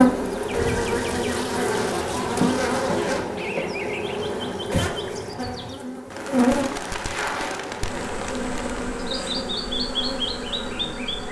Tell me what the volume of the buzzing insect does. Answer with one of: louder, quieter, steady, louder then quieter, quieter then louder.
quieter.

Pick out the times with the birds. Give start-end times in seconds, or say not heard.
0.2-11.2.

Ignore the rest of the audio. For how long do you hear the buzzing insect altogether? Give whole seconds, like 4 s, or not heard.
11 s.